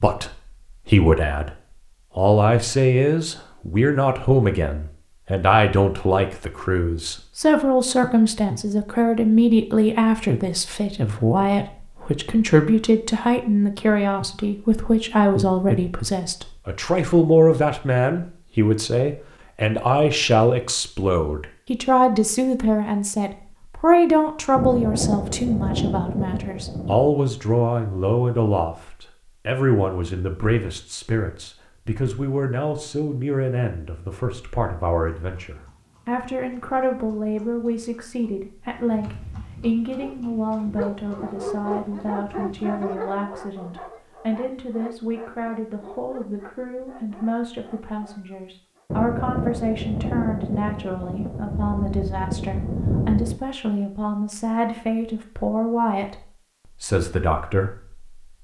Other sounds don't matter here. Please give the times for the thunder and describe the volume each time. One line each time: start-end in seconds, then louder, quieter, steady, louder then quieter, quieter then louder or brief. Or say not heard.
24.6-27.1 brief
48.9-53.4 quieter then louder.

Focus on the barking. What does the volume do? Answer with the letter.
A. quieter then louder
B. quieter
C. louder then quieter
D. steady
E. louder
B.